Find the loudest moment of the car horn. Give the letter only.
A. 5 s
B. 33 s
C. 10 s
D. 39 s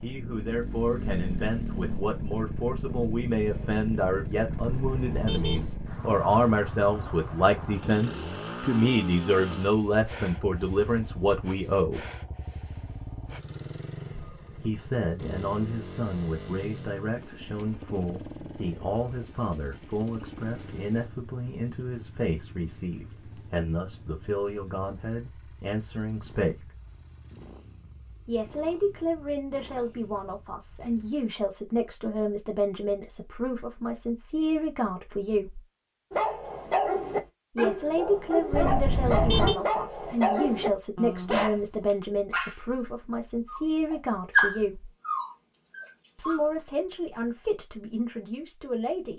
D.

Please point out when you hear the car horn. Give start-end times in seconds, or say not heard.
4.5-5.7, 38.5-39.5.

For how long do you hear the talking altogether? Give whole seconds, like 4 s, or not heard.
42 s.